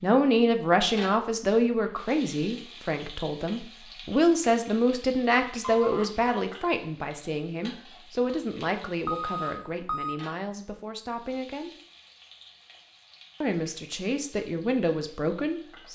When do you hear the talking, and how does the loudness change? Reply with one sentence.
You can hear the talking from 0.0 to 11.7 s, getting quieter; and briefly from 13.4 to 15.9 s.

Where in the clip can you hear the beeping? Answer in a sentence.
You can hear the beeping from 5.6 to 6.1 s and from 9.1 to 10.2 s.